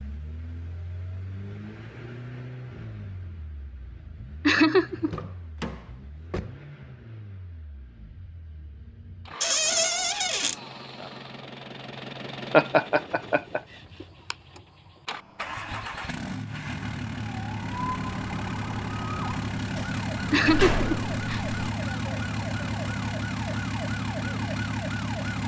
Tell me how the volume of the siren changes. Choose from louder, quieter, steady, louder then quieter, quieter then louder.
steady.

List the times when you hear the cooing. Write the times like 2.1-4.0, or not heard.
not heard.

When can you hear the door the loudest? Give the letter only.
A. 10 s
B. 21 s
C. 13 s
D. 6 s
A.